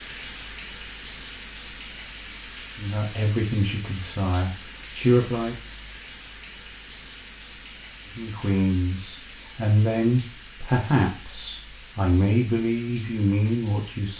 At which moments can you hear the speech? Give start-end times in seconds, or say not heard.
2.8-5.5, 8.2-14.1.